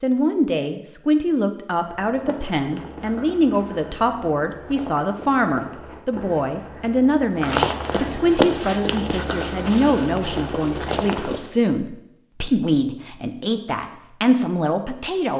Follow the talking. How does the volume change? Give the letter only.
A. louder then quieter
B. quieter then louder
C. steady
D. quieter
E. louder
C.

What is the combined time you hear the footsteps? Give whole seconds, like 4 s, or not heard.
10 s.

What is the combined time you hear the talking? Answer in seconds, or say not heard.
15 s.